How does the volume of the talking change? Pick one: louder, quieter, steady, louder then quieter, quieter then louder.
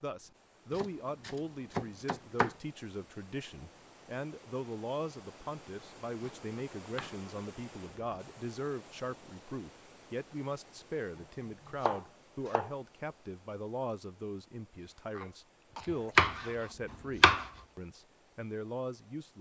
steady.